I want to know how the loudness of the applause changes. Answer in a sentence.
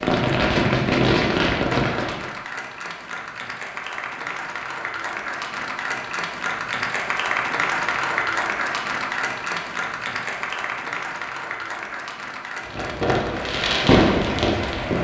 The loudness of the applause goes up, then down.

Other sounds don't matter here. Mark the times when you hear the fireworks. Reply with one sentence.
The fireworks can be heard from 0.0 to 2.3 s and from 12.6 to 14.9 s.